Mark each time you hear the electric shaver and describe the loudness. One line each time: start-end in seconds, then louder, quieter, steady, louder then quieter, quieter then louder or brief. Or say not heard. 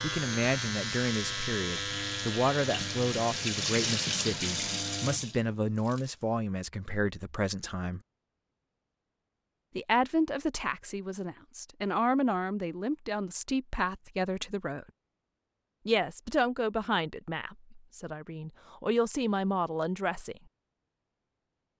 0.0-5.2 quieter.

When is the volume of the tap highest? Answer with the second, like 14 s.
4 s.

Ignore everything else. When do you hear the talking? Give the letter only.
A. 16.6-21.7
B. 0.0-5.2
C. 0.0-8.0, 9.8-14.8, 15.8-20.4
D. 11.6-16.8
C.